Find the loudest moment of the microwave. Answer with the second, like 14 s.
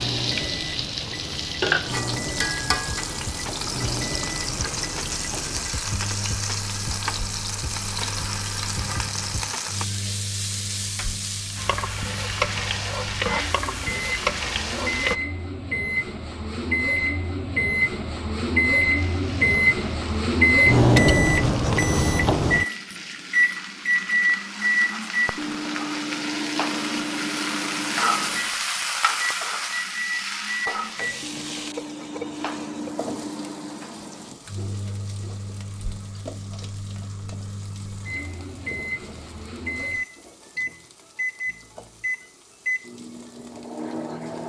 21 s.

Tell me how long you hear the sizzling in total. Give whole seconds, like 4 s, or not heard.
41 s.